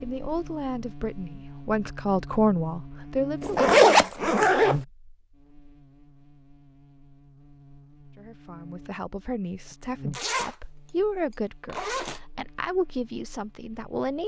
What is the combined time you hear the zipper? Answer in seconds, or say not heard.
3 s.